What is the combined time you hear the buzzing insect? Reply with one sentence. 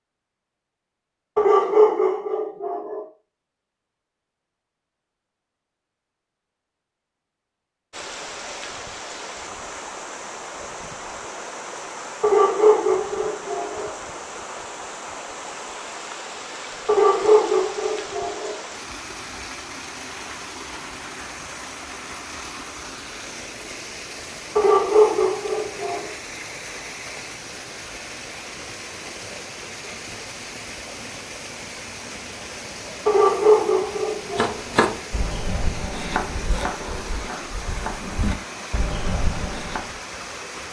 The buzzing insect can't be heard in this clip.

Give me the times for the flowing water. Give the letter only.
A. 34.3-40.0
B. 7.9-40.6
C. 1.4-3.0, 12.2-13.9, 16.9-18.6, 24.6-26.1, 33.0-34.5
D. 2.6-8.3
B.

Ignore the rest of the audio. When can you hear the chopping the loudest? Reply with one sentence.
The volume of the chopping peaks at 35 seconds.